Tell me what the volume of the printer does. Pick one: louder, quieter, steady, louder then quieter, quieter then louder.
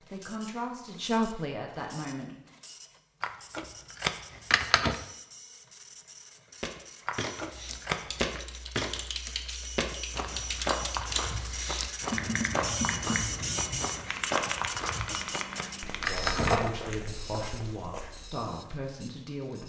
louder then quieter.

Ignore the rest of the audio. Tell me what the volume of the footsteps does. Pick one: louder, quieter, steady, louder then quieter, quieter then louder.
quieter.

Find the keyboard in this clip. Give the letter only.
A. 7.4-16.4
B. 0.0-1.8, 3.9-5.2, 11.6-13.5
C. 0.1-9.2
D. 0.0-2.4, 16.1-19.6
A.